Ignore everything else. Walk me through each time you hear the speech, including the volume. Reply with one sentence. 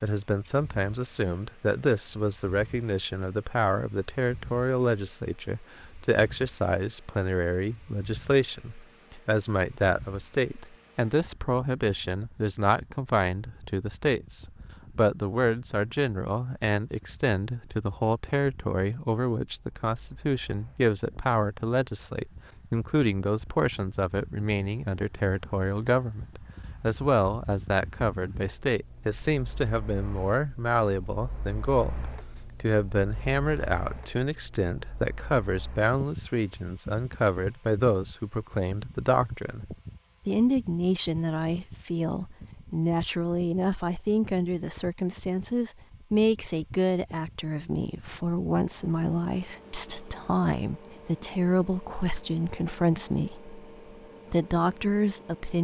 The speech can be heard from 0.0 to 53.5 s, at a steady volume; and briefly from 54.3 to 55.5 s.